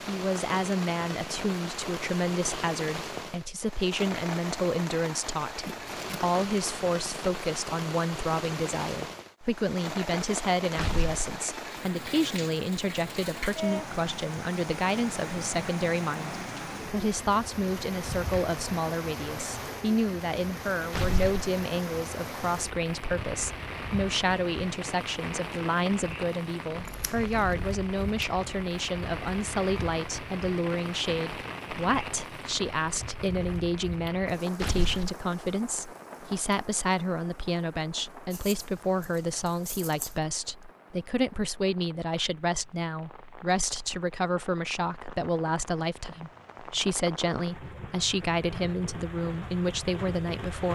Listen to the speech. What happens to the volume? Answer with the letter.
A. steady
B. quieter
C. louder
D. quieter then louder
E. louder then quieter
A.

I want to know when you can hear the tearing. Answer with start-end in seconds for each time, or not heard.
10.8-11.3, 20.9-21.4, 34.6-35.1.